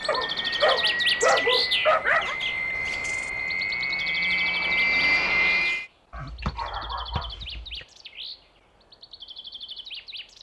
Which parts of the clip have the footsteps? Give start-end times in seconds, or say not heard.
not heard.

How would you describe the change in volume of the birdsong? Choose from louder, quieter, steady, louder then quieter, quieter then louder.
quieter.